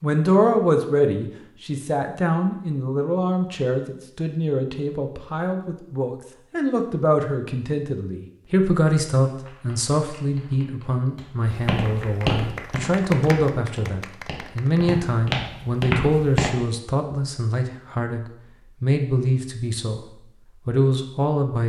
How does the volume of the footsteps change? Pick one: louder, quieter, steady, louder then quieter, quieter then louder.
quieter then louder.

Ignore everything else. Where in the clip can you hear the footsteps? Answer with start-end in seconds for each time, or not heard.
11.4-16.5.